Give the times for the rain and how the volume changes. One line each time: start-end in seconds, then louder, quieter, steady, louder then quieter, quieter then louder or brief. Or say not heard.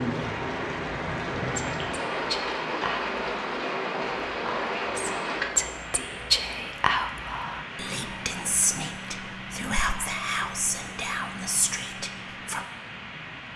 0.0-13.5 quieter.